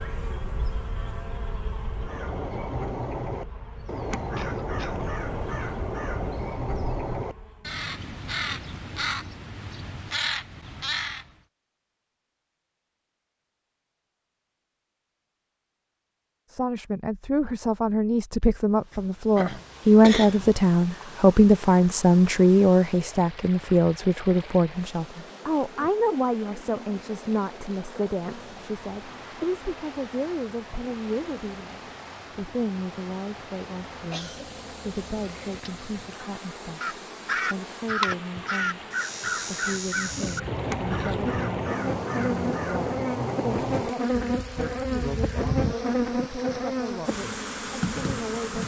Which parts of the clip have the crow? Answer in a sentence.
You can hear the crow from 1.9 to 11.3 s and from 36.8 to 46.0 s.